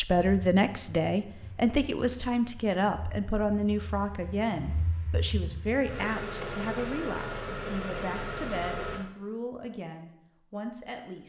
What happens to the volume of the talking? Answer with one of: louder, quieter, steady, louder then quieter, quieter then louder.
quieter.